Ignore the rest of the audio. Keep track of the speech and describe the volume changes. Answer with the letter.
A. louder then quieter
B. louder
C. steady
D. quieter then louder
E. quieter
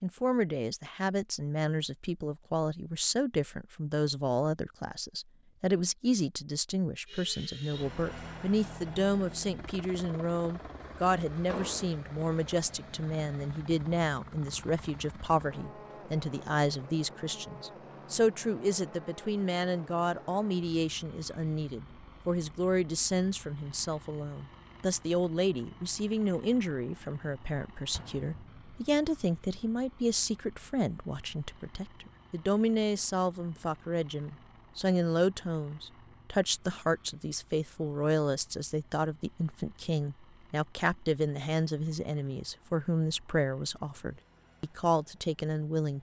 C.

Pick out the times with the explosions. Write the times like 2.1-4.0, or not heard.
11.4-11.9, 27.9-28.9.